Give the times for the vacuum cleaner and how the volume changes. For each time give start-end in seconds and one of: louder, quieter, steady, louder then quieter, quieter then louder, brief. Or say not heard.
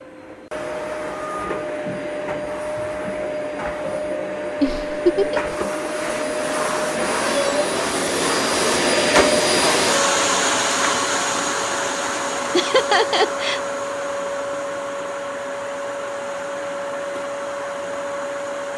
0.0-18.7 louder then quieter.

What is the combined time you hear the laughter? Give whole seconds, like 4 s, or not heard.
2 s.